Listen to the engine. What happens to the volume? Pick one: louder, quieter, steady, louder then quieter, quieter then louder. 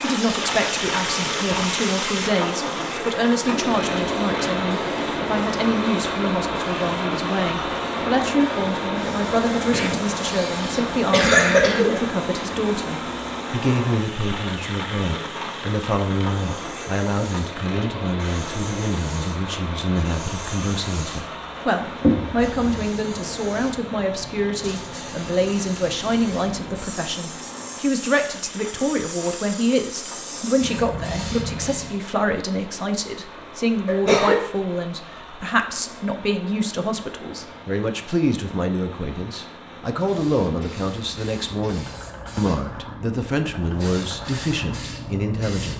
quieter.